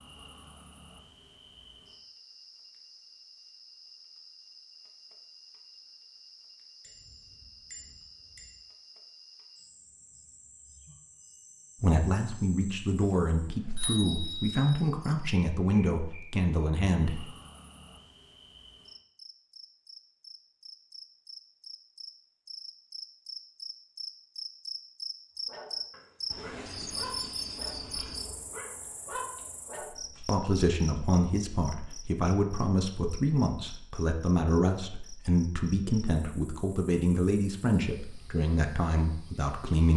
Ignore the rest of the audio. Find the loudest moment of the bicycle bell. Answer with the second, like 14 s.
14 s.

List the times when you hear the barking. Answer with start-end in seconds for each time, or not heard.
25.4-31.0.